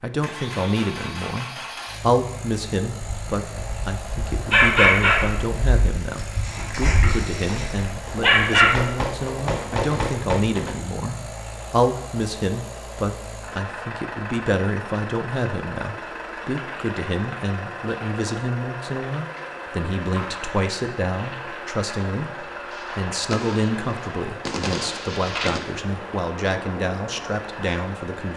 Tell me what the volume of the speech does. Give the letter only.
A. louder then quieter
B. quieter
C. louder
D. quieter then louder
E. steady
E.